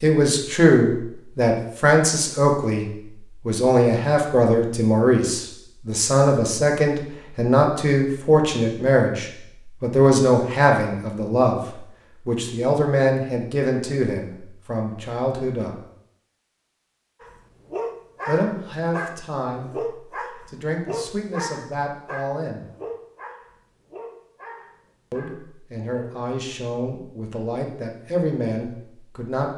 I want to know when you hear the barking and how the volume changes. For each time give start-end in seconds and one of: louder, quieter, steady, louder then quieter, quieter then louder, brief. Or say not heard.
17.2-26.2 quieter.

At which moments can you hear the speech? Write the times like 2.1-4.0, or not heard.
0.0-15.8, 18.2-19.7, 20.5-22.7, 25.1-29.5.